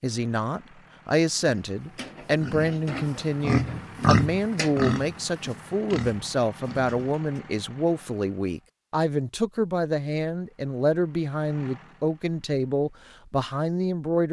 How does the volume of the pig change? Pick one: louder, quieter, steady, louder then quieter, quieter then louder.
louder then quieter.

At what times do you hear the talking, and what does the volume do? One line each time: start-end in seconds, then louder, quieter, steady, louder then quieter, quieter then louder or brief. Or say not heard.
0.0-14.2 steady.